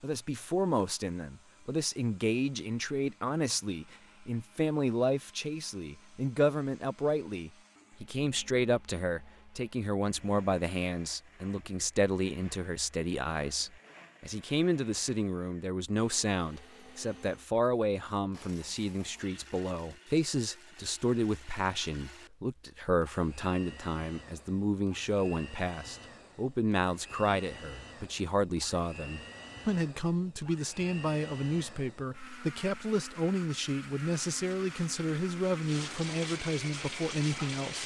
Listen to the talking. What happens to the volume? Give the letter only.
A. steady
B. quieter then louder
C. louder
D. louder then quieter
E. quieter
A.